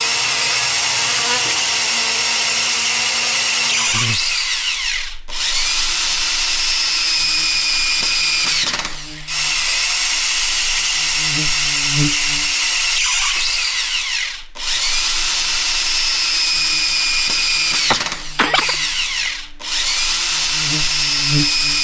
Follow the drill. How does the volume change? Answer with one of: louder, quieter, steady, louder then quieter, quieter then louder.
steady.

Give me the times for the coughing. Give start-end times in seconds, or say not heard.
17.9-19.3.